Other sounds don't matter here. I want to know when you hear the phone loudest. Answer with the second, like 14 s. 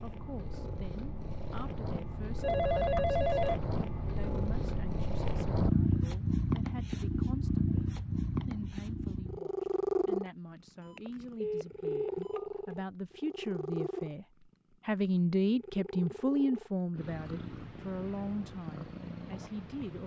3 s.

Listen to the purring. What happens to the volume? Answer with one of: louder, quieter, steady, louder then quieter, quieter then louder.
louder then quieter.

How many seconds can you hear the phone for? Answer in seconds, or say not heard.
3 s.